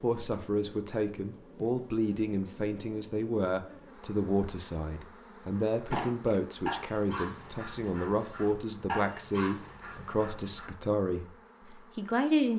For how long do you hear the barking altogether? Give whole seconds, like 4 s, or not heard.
5 s.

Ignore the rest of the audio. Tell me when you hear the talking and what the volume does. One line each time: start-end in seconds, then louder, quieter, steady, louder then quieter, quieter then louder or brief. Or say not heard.
0.0-12.5 steady.